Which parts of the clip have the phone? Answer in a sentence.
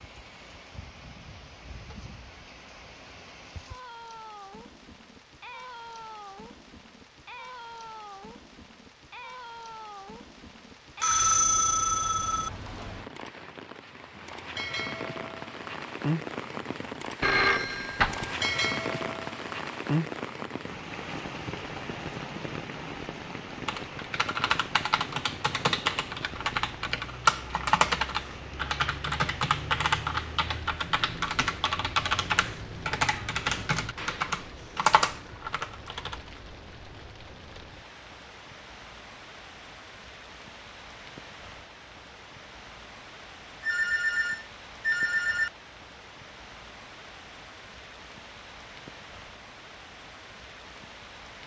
The phone can be heard from 11.0 to 12.5 s, from 17.2 to 18.4 s and from 43.6 to 45.5 s.